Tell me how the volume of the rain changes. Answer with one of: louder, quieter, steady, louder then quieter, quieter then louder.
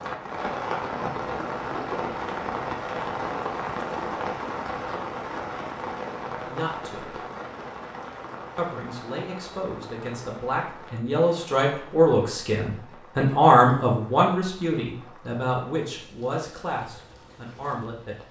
quieter.